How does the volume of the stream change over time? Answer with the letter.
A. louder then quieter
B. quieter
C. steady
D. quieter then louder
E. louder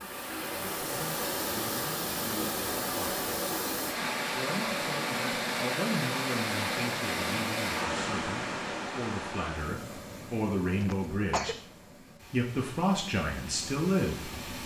B.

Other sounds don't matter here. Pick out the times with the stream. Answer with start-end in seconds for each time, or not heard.
0.0-14.6.